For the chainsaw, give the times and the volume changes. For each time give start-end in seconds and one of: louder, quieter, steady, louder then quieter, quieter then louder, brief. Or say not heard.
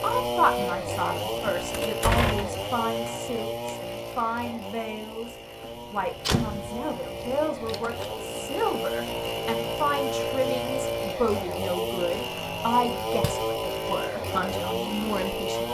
0.0-15.6 quieter then louder.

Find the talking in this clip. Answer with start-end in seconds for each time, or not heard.
0.0-15.6.